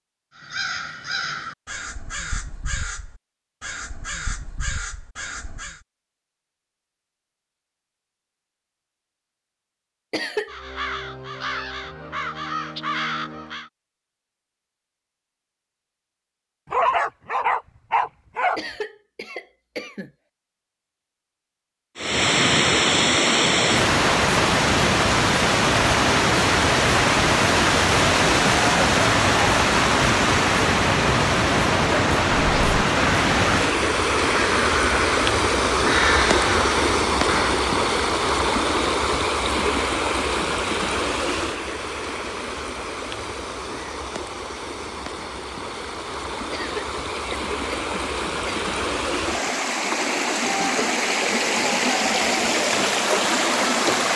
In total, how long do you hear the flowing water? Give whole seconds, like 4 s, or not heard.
32 s.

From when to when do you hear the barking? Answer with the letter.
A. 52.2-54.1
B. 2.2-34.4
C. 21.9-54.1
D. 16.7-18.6
D.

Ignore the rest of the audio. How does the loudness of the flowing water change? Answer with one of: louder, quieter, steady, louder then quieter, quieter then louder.
quieter then louder.